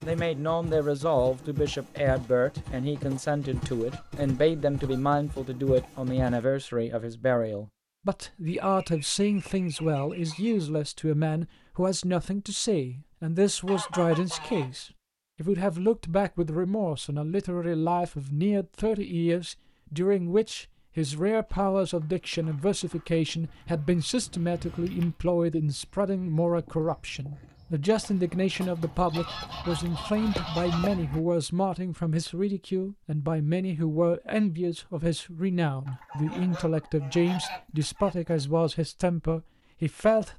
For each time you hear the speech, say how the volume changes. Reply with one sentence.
You can hear the speech from 0.0 to 40.3 s, at a steady volume.